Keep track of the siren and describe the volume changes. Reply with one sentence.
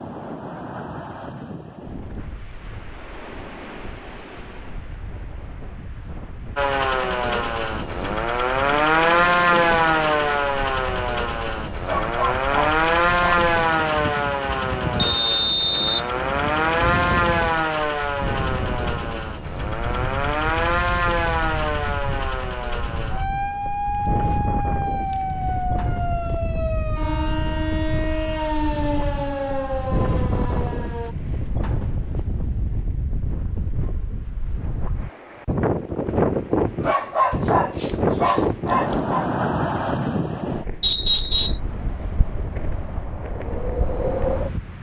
The loudness of the siren goes down.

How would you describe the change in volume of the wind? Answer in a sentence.
The loudness of the wind goes up.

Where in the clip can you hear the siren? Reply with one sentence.
The siren can be heard from 6.5 to 31.1 s.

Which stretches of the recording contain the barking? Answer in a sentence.
You can hear the barking from 11.8 to 13.4 s and from 36.8 to 39.2 s.